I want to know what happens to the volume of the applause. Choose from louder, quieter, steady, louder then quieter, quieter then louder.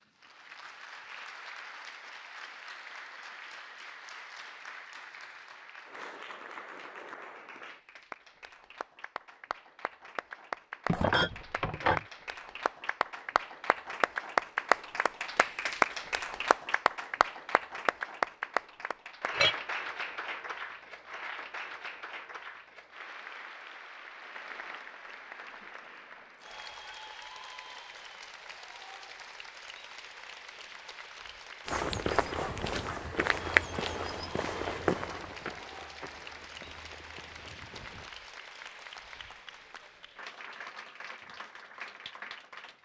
louder then quieter.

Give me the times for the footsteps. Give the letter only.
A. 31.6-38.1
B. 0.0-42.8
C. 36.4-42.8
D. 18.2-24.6
A.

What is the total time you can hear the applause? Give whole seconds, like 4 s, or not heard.
43 s.